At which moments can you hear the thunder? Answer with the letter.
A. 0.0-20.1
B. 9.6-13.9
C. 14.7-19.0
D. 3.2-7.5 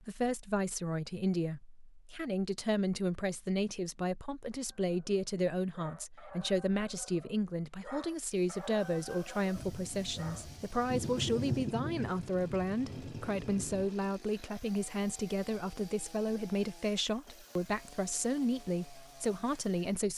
B.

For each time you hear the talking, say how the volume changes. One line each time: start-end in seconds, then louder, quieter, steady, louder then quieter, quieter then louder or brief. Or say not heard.
0.0-20.1 steady.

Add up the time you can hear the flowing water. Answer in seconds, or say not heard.
not heard.